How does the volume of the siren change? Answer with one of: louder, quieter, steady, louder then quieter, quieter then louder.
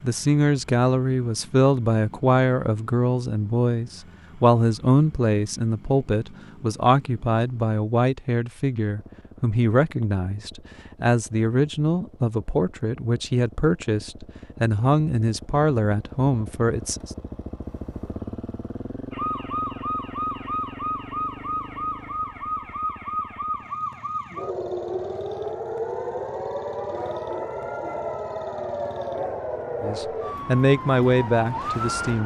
steady.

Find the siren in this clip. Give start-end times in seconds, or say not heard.
19.1-32.2.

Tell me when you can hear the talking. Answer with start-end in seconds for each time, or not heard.
0.0-17.1, 29.8-32.2.